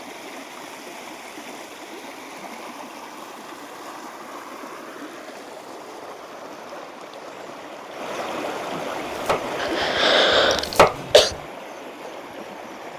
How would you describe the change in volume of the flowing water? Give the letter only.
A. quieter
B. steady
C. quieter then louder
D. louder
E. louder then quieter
E.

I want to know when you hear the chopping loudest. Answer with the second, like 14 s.
11 s.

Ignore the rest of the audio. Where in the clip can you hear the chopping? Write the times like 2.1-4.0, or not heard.
9.1-11.3.